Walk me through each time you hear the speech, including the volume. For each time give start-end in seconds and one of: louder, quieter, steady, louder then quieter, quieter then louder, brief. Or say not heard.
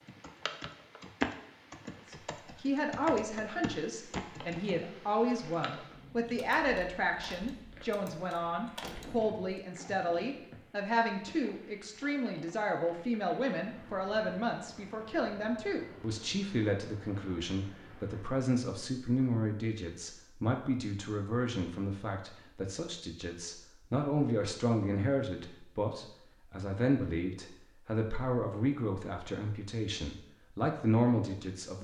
2.1-31.7 steady.